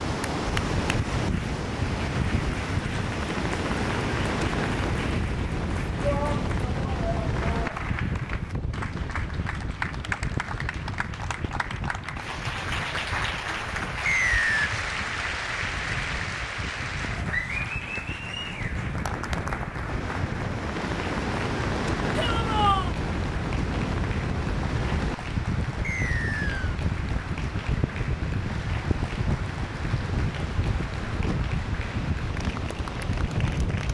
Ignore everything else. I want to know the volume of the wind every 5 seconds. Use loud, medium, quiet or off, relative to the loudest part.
loud, loud, medium, medium, loud, loud, loud.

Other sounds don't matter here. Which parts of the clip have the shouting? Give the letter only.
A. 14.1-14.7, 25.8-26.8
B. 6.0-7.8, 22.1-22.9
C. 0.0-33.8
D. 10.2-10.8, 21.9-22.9
B.